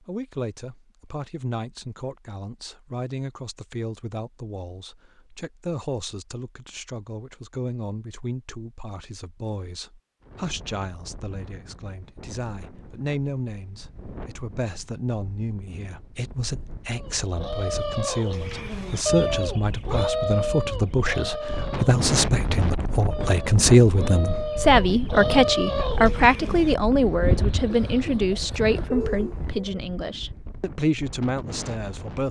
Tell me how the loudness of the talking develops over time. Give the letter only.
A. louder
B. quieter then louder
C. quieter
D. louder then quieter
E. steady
A.